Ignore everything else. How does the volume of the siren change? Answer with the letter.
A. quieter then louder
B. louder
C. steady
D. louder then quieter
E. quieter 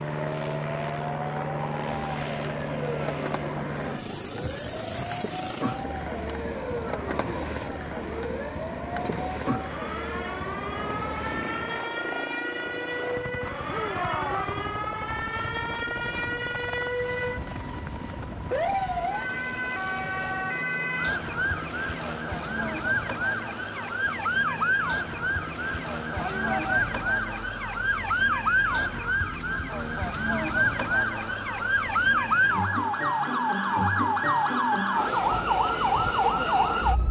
B.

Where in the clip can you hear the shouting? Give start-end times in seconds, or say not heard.
13.7-14.5, 26.1-26.9.